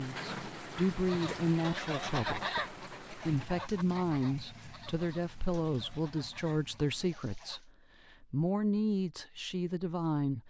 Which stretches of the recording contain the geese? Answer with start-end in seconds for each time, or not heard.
1.0-7.7.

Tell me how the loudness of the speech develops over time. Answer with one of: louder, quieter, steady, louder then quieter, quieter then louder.
steady.